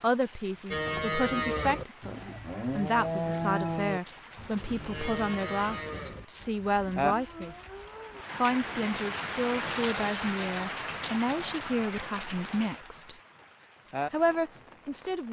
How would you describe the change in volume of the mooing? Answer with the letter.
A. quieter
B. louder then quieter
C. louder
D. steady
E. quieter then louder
A.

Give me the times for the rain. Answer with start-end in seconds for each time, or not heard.
0.0-15.2.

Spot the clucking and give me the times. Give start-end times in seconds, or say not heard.
not heard.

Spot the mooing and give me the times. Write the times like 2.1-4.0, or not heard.
0.7-8.2.